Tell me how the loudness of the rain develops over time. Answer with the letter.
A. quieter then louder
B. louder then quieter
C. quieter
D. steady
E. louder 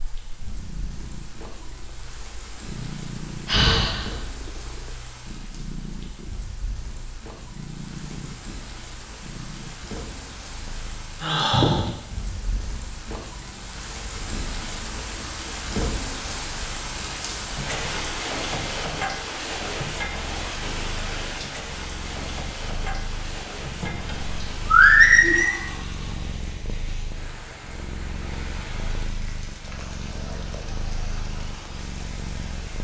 B.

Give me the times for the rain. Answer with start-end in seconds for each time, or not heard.
0.0-32.8.